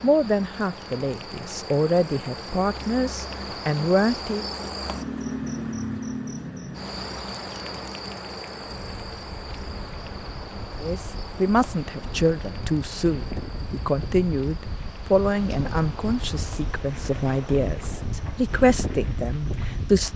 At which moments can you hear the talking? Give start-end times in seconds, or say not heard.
0.0-4.5, 10.8-20.1.